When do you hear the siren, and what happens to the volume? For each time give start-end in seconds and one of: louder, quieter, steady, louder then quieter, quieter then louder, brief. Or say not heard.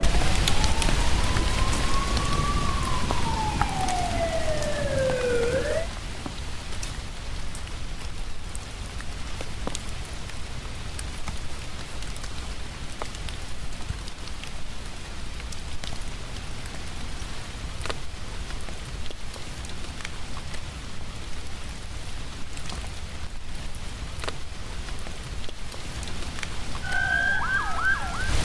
0.0-5.9 louder
26.8-28.3 brief.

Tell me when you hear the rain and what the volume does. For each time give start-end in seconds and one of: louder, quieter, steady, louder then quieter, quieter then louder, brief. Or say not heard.
0.0-28.3 quieter.